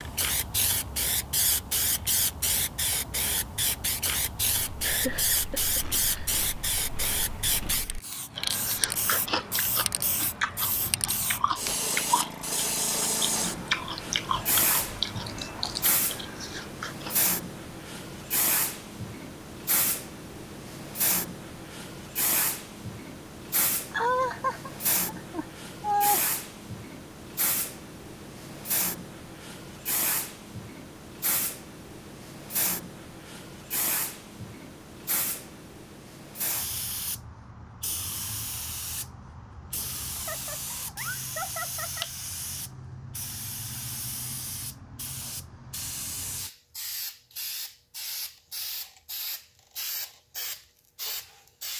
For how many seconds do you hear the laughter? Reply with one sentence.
You can hear the laughter for 6 seconds altogether.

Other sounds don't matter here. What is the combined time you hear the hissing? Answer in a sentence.
The hissing can be heard for 52 seconds in total.